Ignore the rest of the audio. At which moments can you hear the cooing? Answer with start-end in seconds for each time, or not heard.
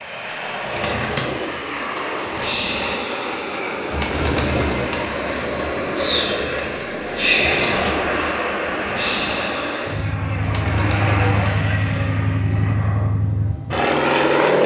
0.7-12.6.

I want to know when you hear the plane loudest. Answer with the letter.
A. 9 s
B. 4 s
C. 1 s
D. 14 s
D.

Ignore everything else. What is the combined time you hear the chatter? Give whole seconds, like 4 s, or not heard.
not heard.